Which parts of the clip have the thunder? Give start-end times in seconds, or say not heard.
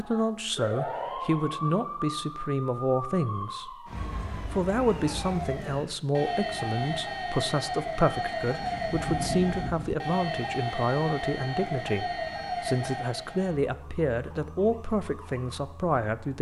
8.4-9.9.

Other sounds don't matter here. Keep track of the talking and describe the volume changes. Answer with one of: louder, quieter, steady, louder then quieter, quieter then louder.
steady.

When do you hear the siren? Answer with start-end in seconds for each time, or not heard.
0.0-16.3.